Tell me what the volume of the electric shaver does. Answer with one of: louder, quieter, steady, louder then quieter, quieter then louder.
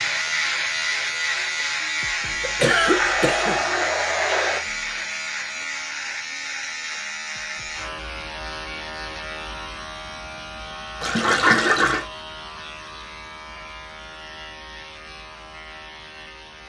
quieter.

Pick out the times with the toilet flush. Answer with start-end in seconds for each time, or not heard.
2.8-4.6, 11.0-12.1.